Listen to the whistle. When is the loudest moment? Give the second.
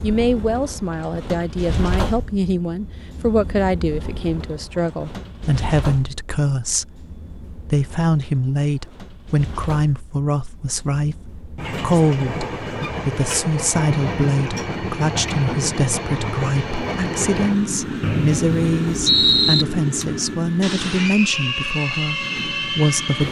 19 s.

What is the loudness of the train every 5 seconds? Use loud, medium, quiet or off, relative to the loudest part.
medium, quiet, loud, loud, loud.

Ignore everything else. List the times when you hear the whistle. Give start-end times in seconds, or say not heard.
18.0-19.6.